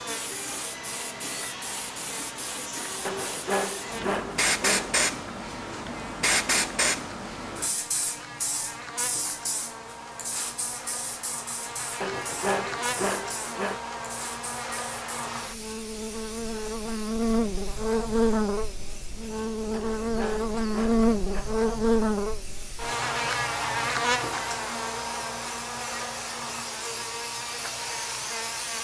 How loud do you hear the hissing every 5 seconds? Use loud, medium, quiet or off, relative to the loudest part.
loud, loud, medium, quiet, quiet, medium.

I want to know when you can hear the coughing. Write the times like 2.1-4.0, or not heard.
not heard.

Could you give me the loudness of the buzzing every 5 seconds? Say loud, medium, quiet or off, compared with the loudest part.
quiet, quiet, medium, loud, loud, medium.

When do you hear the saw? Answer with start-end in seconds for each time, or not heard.
3.0-5.0, 12.0-13.8, 19.7-21.4.